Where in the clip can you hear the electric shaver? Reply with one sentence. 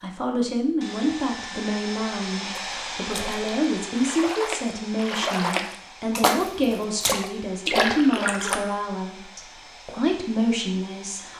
You can't hear the electric shaver here.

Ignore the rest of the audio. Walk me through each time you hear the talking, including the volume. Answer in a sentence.
The talking can be heard from 0.0 to 11.3 s, at a steady volume.